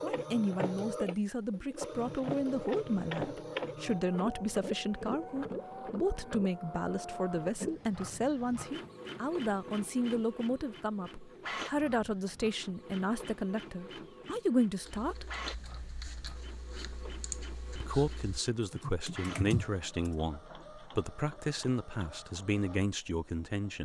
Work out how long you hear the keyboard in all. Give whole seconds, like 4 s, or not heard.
5 s.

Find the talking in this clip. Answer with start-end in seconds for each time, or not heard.
0.0-15.2, 17.8-23.8.